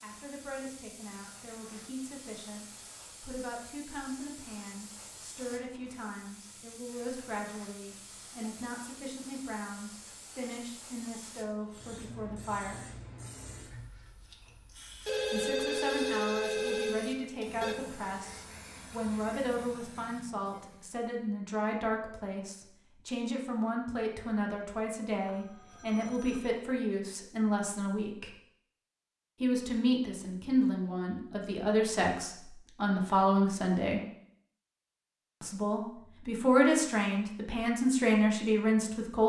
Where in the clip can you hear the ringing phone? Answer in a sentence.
The ringing phone can be heard from 15.1 to 17.8 s and from 25.2 to 26.5 s.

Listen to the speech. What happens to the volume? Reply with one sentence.
The volume of the speech goes up.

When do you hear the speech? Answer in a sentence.
The speech can be heard from 0.0 to 12.9 s, from 15.3 to 28.3 s, from 29.4 to 34.0 s and from 35.4 to 39.2 s.